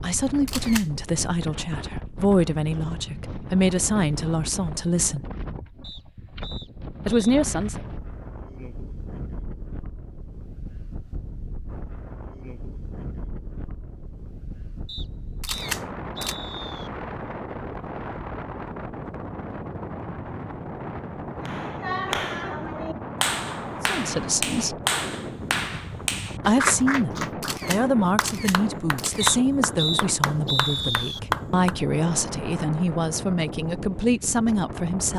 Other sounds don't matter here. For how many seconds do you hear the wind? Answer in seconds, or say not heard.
35 s.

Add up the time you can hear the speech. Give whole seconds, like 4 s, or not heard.
16 s.